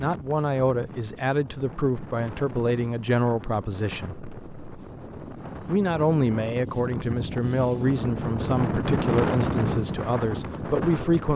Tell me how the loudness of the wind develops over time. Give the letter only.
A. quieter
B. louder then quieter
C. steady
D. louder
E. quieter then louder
D.